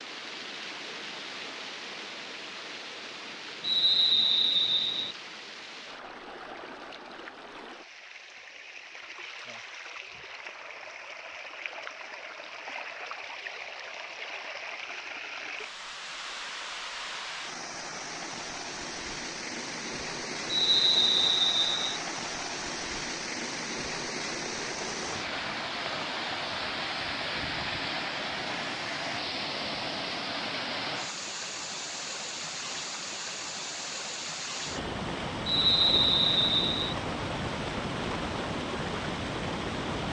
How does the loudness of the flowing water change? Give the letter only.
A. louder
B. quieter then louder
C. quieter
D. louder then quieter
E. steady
A.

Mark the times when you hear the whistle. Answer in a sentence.
You can hear the whistle from 3.6 to 5.2 s, from 20.4 to 22.0 s and from 35.5 to 37.0 s.